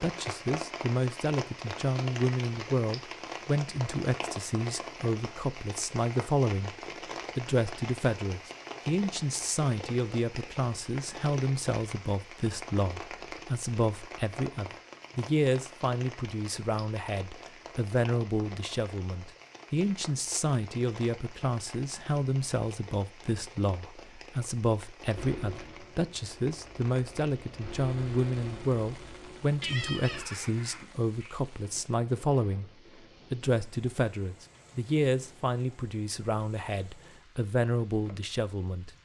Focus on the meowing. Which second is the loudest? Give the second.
30 s.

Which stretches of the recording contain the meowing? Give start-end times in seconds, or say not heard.
28.9-31.4.